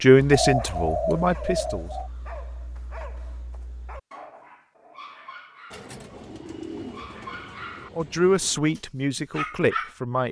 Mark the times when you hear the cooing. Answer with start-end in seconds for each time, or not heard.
0.3-2.1, 5.7-8.6.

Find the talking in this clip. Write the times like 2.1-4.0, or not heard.
0.0-1.9, 8.0-10.2.